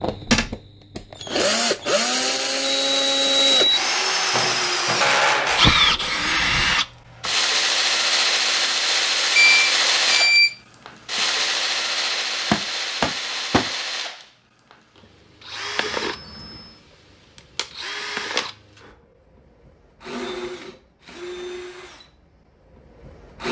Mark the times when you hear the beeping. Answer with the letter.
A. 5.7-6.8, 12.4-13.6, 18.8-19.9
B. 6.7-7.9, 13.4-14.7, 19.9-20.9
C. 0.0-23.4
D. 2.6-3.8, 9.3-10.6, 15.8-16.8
D.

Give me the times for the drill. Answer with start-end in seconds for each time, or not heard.
0.0-23.4.